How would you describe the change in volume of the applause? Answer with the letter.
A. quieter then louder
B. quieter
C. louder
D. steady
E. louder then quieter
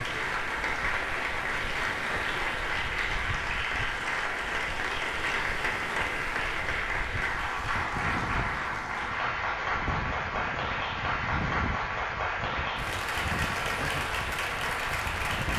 D.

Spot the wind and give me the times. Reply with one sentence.
You can hear the wind from 0.0 to 15.5 s.